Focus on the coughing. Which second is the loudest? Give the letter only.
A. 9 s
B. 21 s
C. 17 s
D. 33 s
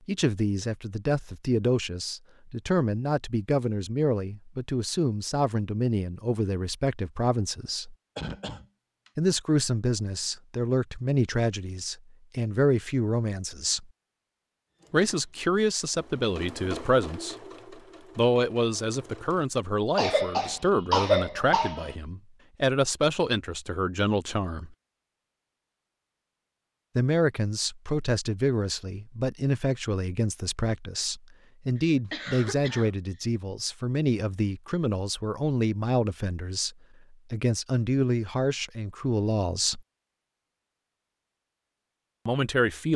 B.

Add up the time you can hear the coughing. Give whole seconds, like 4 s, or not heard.
4 s.